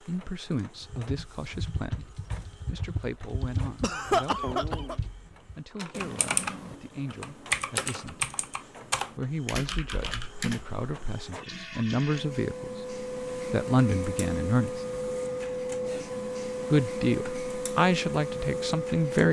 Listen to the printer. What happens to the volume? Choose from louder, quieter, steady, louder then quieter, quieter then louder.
louder.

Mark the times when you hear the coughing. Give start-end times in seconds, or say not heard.
3.8-5.0.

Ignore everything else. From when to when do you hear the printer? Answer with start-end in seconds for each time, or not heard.
0.0-19.2.